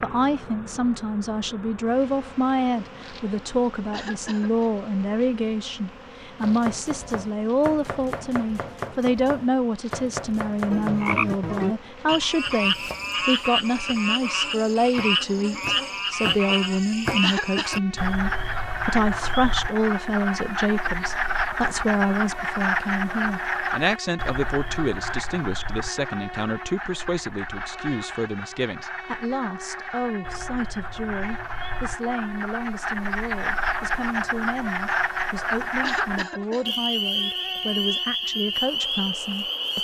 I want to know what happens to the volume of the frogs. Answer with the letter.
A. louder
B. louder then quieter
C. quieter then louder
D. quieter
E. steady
C.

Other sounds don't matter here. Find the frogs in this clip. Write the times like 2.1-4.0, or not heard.
10.7-39.7.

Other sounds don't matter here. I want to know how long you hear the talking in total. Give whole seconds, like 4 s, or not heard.
40 s.